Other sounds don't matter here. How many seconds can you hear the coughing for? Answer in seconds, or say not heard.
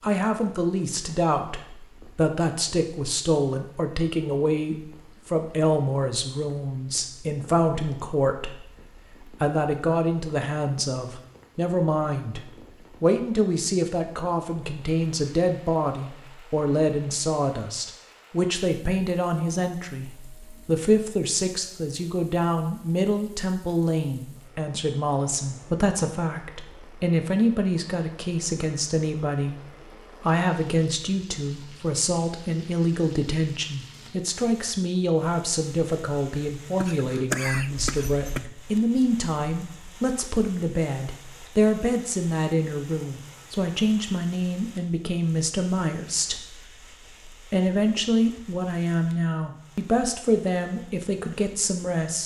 2 s.